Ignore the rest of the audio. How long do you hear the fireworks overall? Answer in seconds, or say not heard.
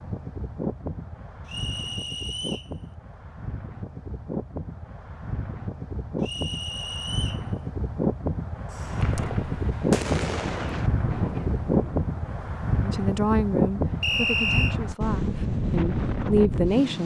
4 s.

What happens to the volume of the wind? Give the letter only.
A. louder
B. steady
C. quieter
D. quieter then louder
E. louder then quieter
A.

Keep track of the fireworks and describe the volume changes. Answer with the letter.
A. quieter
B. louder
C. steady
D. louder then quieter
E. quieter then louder
D.